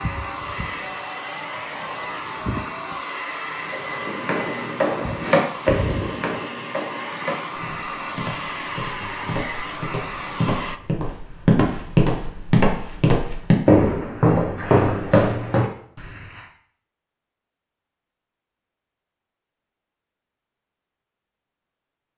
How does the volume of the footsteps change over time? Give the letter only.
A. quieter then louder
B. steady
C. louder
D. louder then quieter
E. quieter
A.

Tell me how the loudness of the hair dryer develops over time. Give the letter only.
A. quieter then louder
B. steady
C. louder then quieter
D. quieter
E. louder
B.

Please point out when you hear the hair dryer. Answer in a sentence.
You can hear the hair dryer from 0.0 to 10.8 s.